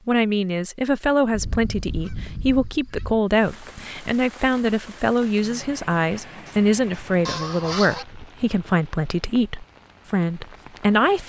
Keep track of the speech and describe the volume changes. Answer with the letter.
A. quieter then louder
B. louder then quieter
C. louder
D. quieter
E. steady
E.